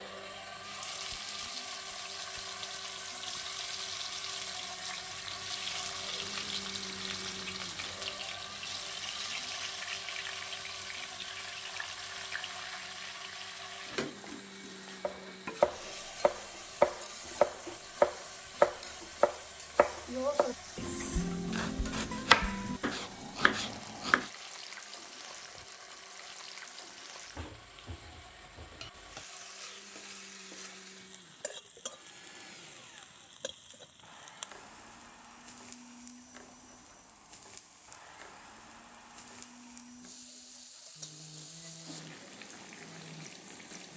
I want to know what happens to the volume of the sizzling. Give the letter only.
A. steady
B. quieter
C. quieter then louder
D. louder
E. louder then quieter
B.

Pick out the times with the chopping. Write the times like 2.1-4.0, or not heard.
15.0-24.3.